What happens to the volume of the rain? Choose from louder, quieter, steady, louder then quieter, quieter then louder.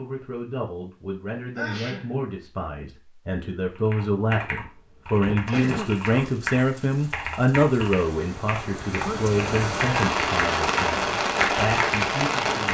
louder.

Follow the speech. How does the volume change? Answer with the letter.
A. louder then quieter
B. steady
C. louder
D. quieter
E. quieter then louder
A.